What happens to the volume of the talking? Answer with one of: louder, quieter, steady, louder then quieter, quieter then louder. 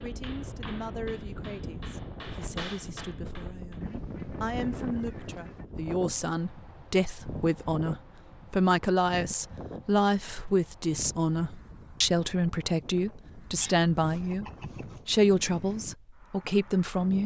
louder.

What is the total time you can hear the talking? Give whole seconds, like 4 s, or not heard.
17 s.